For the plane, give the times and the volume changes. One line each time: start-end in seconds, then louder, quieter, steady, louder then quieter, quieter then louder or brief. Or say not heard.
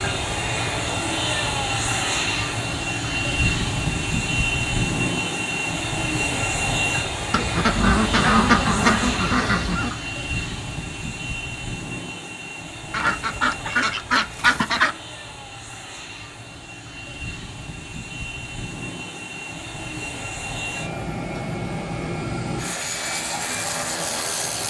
0.0-24.6 quieter then louder.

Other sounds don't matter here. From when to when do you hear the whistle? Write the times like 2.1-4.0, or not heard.
not heard.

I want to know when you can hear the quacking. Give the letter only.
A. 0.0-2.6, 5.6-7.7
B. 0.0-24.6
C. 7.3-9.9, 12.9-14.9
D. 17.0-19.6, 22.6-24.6
C.